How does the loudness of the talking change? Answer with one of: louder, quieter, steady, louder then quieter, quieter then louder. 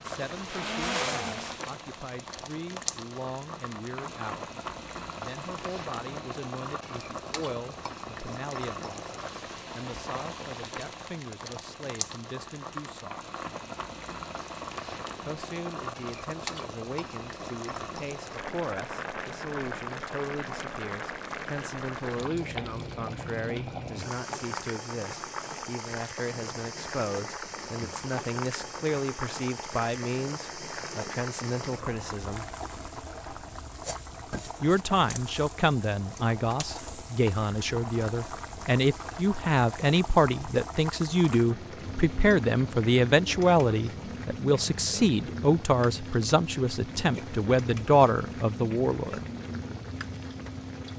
louder.